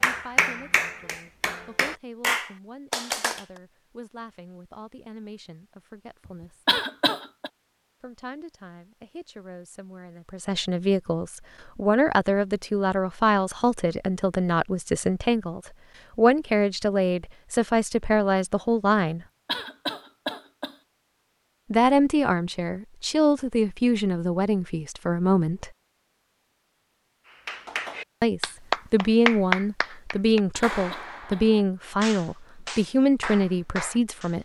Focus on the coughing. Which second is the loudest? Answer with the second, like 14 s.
7 s.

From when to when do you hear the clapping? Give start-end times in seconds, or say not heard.
0.0-3.4, 27.3-34.4.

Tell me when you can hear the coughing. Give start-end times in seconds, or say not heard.
6.7-7.5, 19.4-20.8, 30.5-31.5.